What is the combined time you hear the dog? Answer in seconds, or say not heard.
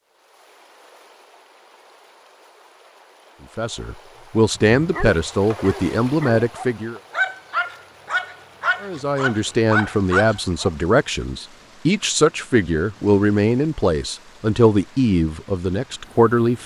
6 s.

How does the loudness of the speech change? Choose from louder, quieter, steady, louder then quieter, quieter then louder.
steady.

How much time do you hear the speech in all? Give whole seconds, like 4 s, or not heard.
11 s.